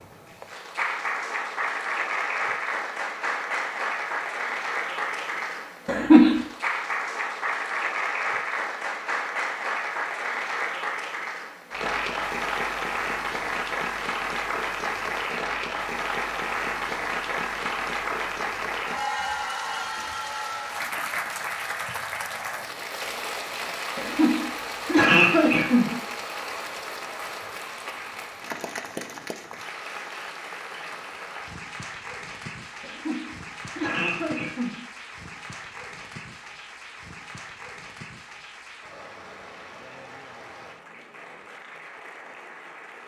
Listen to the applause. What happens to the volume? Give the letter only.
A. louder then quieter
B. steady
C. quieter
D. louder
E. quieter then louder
C.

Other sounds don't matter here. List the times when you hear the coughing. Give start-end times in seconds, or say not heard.
5.8-6.4, 23.9-25.9, 32.8-34.9.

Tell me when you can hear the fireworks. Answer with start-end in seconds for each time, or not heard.
not heard.